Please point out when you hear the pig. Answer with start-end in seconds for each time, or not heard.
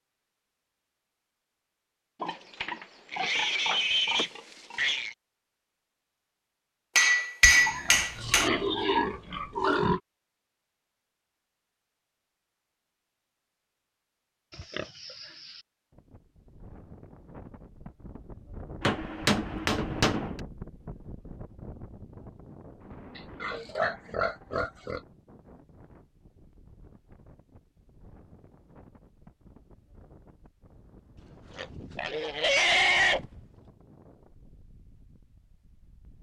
2.2-5.2, 7.4-10.0, 14.5-15.6, 23.1-25.0, 31.6-33.4.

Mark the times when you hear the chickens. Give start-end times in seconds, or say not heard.
not heard.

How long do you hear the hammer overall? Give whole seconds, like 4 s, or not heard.
3 s.